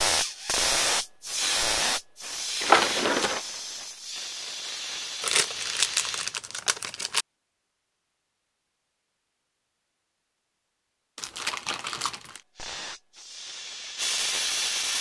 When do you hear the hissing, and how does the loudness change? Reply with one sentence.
You can hear the hissing from 0.0 to 6.4 s, getting quieter; and briefly from 12.6 to 14.9 s.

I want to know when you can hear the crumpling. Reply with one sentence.
The crumpling can be heard from 2.6 to 3.4 s, from 5.2 to 7.2 s and from 11.2 to 12.4 s.